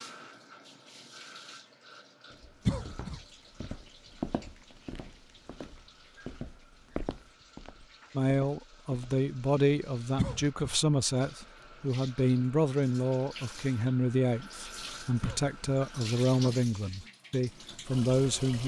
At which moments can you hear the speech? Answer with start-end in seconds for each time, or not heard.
8.2-18.6.